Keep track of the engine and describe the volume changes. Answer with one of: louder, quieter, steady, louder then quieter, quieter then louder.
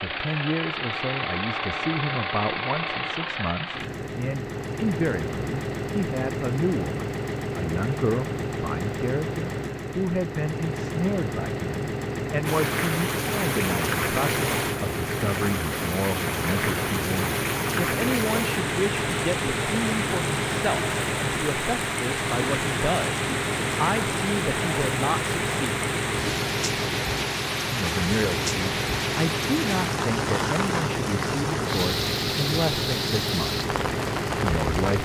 steady.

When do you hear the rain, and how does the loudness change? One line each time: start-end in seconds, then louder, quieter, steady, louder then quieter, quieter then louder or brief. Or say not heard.
12.4-34.9 steady.